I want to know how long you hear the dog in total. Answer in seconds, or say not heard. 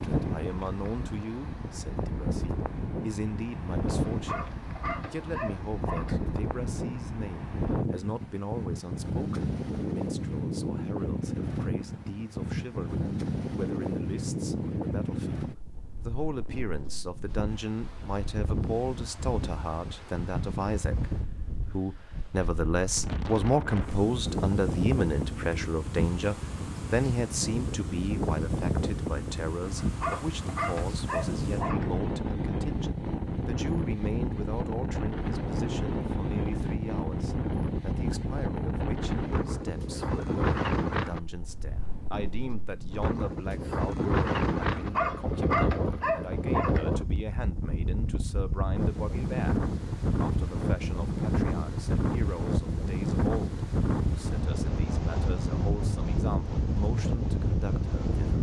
7 s.